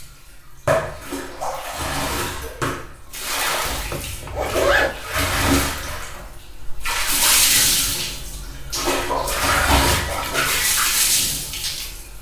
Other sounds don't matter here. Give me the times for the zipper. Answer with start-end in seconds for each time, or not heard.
3.6-4.9.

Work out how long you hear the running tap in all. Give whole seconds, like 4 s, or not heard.
12 s.